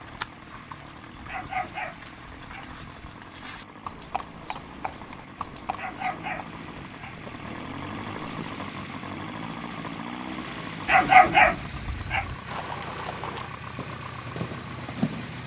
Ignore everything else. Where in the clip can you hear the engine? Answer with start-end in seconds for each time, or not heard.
0.0-15.4.